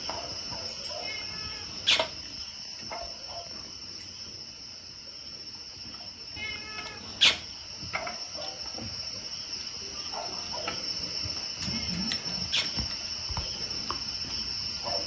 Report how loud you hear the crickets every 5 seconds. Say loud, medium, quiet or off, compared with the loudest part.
medium, medium, loud.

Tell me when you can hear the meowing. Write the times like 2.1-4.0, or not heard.
1.0-2.0, 6.3-7.3, 11.7-13.1.